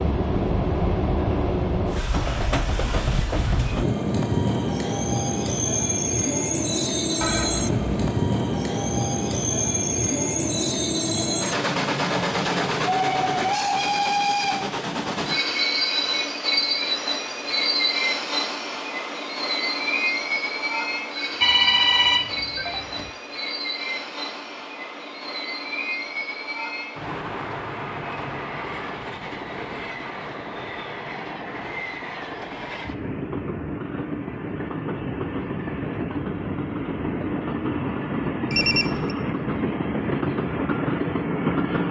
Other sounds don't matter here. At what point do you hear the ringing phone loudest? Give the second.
22 s.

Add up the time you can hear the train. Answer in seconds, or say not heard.
42 s.